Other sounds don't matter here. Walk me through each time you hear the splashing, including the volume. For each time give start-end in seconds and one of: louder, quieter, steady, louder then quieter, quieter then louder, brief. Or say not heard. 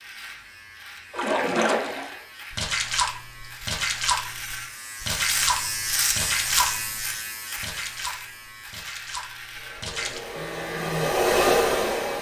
1.1-10.2 quieter.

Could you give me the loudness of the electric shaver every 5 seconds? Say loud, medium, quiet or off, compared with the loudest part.
medium, loud, medium.